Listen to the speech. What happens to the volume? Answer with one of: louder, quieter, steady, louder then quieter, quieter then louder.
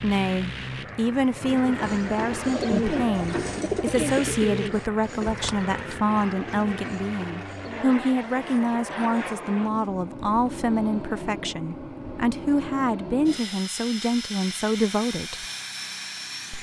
steady.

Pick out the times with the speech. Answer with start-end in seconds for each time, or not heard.
0.0-15.4.